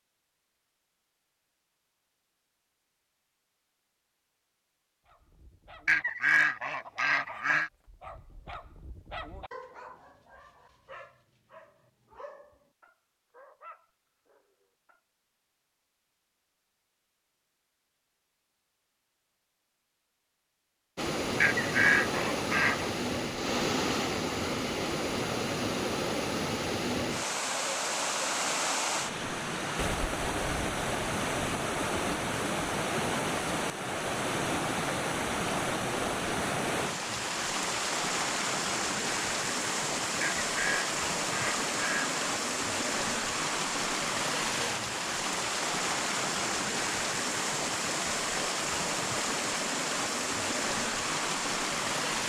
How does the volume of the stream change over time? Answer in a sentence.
The loudness of the stream stays about the same.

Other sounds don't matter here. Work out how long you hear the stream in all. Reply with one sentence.
You can hear the stream for 31 seconds altogether.